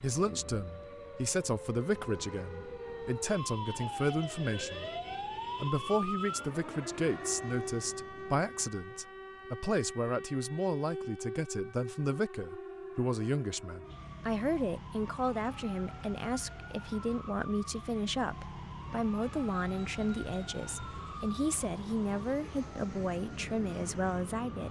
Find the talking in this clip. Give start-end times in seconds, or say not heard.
0.0-4.9, 5.6-24.6.